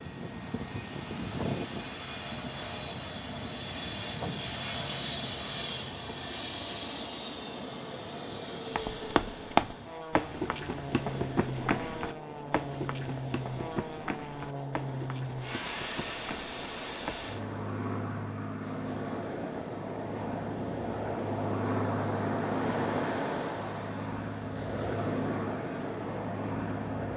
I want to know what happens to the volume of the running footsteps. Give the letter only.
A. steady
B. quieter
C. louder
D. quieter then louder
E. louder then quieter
B.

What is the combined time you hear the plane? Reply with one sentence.
The plane can be heard for 27 seconds in total.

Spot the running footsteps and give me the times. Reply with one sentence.
The running footsteps can be heard from 8.8 to 17.3 s.